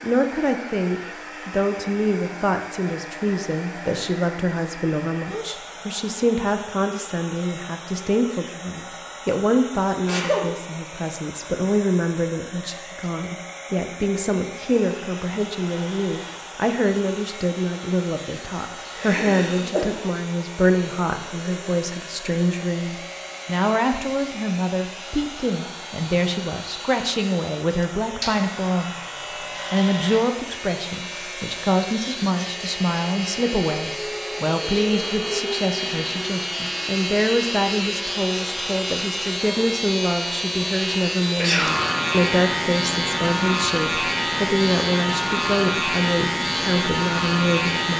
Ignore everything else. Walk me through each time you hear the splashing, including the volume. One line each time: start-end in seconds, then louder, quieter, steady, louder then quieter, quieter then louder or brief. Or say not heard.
not heard.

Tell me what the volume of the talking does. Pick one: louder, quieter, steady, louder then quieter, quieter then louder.
steady.